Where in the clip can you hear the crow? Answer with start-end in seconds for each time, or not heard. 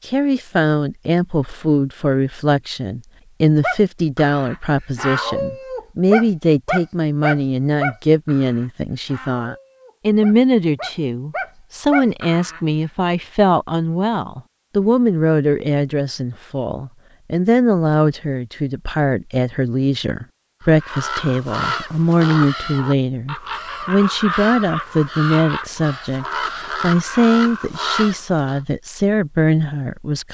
20.6-28.6.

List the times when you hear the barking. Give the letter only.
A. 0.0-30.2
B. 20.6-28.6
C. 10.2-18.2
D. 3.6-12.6
D.